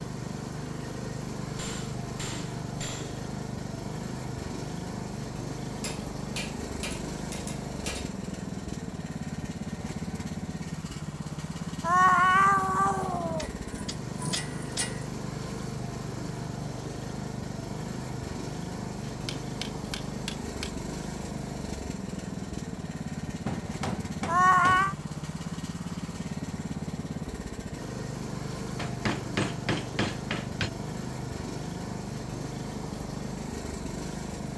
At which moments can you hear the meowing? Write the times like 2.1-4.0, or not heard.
11.8-13.4, 24.2-24.9.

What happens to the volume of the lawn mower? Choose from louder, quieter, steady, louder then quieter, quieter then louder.
steady.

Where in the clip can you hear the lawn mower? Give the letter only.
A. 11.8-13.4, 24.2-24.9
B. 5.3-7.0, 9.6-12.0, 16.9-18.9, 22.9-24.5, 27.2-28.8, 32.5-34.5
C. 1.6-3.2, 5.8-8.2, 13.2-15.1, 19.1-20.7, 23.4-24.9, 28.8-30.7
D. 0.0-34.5
D.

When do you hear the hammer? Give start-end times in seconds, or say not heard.
1.6-3.2, 5.8-8.2, 13.2-15.1, 19.1-20.7, 23.4-24.9, 28.8-30.7.